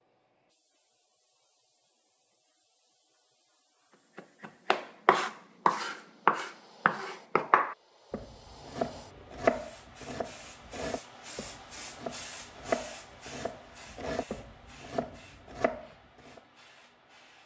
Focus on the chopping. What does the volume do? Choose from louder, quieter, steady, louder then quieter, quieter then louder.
quieter.